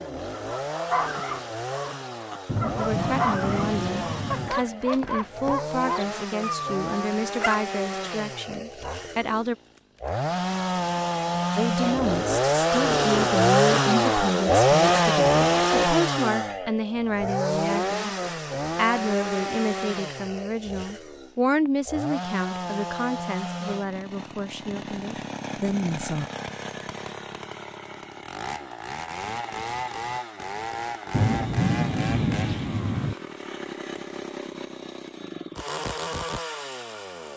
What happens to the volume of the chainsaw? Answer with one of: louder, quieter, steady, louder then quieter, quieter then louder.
louder then quieter.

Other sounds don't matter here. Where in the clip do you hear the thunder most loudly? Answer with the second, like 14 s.
32 s.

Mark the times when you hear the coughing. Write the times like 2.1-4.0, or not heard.
not heard.